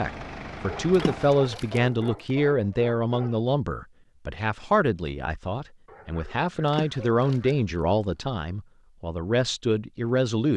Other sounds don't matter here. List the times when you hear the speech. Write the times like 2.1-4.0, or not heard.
0.0-10.5.